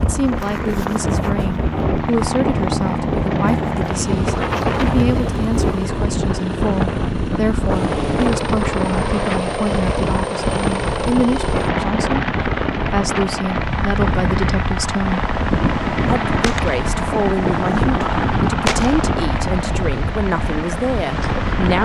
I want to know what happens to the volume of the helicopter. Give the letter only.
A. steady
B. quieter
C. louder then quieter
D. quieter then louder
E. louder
A.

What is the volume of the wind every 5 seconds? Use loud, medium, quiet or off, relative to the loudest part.
loud, loud, loud, medium, loud.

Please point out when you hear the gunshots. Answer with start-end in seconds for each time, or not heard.
15.3-19.1.